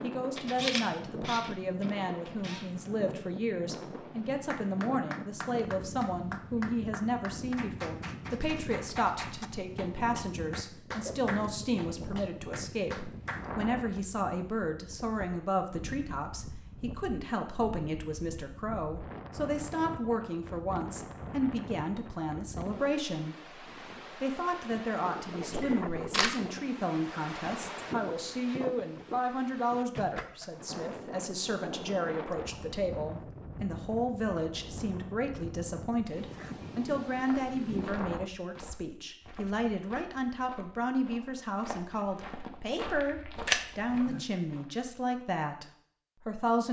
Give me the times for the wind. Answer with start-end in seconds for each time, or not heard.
0.0-38.3.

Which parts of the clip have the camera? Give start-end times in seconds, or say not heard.
0.3-2.6, 25.5-26.4, 43.5-44.2.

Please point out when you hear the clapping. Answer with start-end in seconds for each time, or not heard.
4.5-13.5.